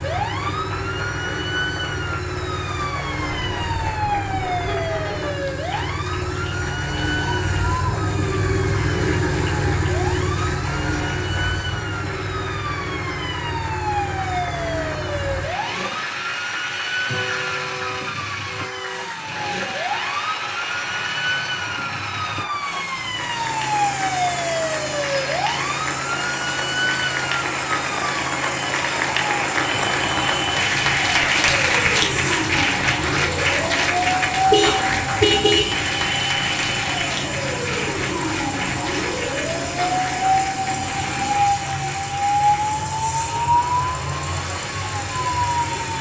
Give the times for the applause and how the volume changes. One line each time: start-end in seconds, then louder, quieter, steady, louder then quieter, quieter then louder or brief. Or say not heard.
0.0-45.9 louder then quieter.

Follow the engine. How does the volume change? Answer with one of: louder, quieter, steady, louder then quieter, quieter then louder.
steady.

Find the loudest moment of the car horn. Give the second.
35 s.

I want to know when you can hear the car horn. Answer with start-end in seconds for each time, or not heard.
3.2-5.2, 17.1-19.1, 34.5-35.8.